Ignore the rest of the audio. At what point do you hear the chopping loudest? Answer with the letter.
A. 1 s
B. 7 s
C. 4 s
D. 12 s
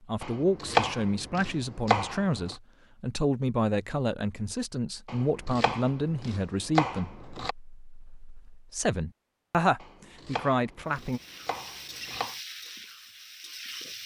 A.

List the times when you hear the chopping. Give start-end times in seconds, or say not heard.
0.2-2.5, 5.0-7.5, 9.8-12.3.